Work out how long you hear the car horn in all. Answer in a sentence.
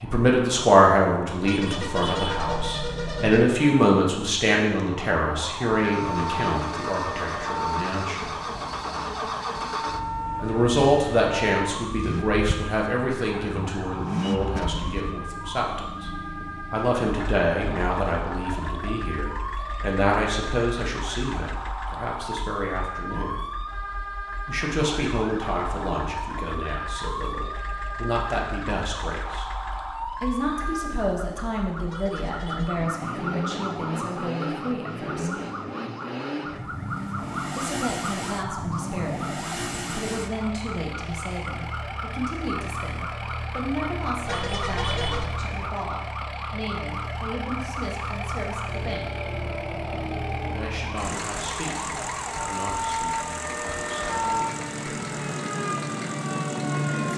You can hear the car horn for 4 seconds altogether.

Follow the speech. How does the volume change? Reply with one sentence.
The volume of the speech goes down.